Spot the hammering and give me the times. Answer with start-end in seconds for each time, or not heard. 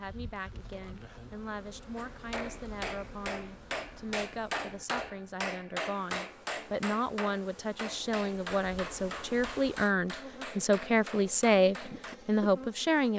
1.9-12.2.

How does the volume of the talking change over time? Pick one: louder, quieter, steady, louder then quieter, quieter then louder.
louder.